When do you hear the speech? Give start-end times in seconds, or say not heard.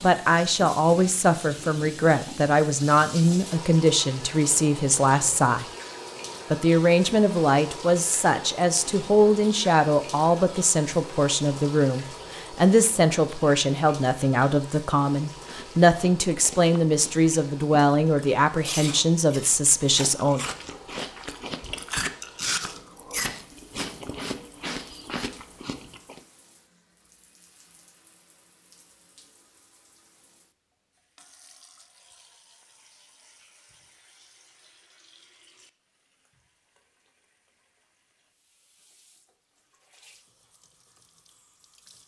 0.0-5.7, 6.5-20.4.